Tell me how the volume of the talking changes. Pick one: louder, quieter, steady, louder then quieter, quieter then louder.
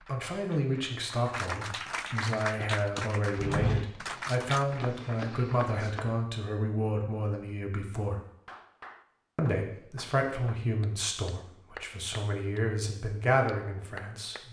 steady.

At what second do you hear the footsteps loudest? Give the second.
4 s.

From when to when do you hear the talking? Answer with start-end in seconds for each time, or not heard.
0.1-8.2, 9.3-14.4.